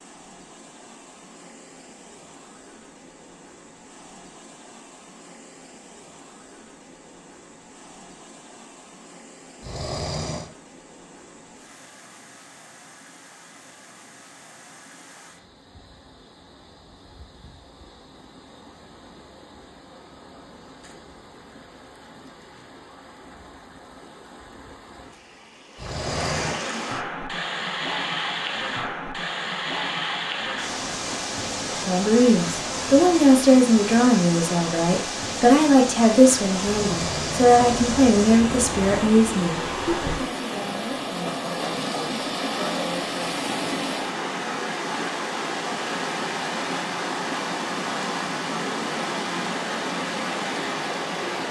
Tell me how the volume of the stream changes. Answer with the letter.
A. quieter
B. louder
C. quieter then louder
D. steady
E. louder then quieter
B.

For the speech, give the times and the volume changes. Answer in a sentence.
You can hear the speech from 31.8 to 43.1 s, getting quieter.